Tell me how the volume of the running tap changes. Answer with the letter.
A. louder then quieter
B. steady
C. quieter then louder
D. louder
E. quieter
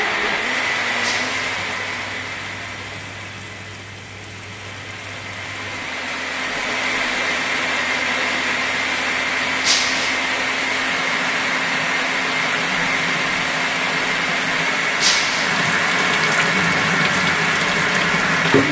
D.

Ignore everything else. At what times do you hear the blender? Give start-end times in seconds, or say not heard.
0.0-18.6.